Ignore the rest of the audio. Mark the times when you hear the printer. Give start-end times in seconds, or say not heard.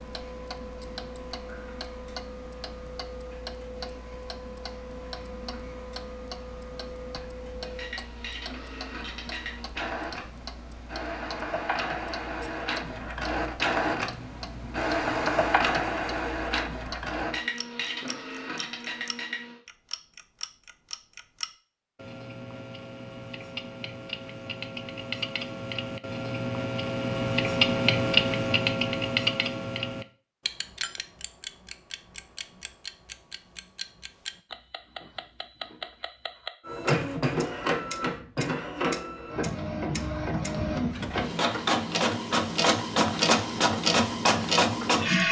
0.0-19.6, 36.6-45.2.